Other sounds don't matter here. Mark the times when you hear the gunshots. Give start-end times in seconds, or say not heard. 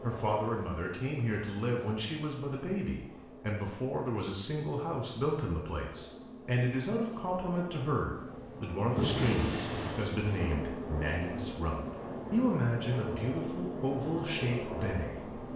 8.9-10.6.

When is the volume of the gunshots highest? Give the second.
9 s.